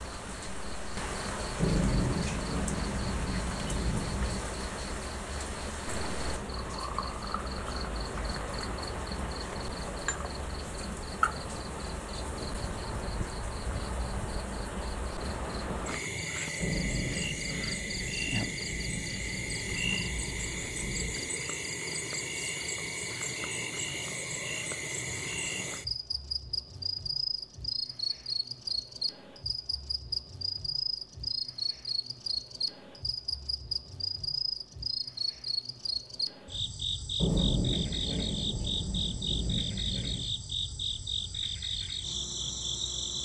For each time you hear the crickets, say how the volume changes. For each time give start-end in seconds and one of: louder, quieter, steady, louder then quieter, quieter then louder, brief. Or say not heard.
0.0-43.2 steady.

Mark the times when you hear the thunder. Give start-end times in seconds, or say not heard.
1.6-4.4, 16.6-21.2, 37.1-40.2.